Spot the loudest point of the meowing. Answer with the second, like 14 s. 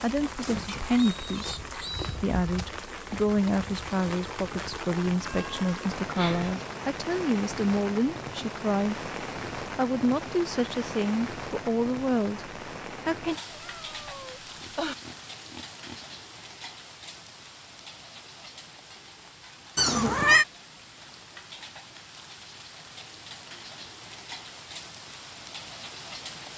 20 s.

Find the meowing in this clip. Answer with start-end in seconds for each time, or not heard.
5.2-6.7, 13.5-14.9, 19.8-20.4.